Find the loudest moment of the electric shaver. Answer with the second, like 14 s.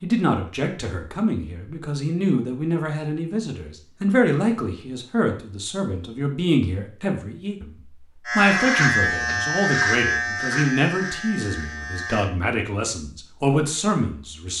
9 s.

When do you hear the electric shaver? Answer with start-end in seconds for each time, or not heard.
8.2-12.3.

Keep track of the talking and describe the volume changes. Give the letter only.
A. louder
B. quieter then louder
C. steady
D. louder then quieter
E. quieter
C.